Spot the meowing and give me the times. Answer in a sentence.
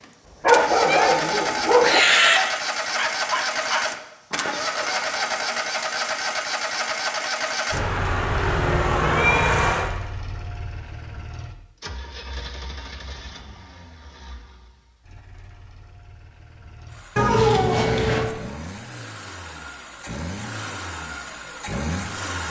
The meowing can be heard from 0.8 to 2.4 s, from 7.7 to 9.9 s and from 17.1 to 18.3 s.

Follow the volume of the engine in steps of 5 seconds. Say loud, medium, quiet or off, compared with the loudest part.
loud, loud, quiet, quiet, medium.